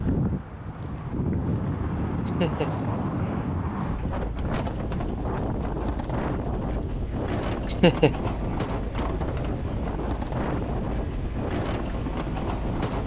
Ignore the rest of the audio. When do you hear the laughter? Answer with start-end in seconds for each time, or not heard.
2.2-2.9, 7.7-8.6.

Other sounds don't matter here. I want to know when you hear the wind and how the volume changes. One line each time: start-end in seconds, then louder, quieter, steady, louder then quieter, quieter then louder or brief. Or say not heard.
0.0-13.0 steady.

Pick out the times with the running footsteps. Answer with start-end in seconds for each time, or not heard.
not heard.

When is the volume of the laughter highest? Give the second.
8 s.